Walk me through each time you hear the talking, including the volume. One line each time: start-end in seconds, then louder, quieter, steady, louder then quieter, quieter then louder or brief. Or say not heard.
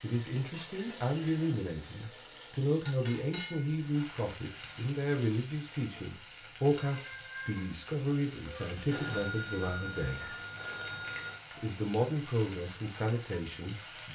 0.0-10.3 steady
11.5-14.1 brief.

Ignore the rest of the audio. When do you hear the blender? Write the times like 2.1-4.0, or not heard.
not heard.